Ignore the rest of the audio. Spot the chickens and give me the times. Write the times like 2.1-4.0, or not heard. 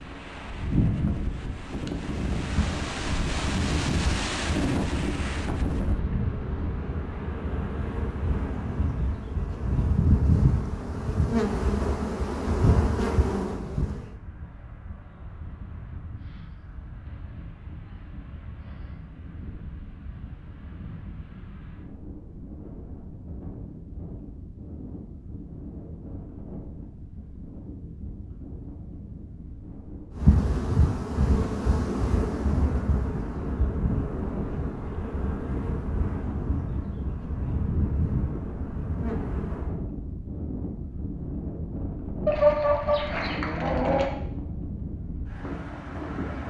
42.2-44.1.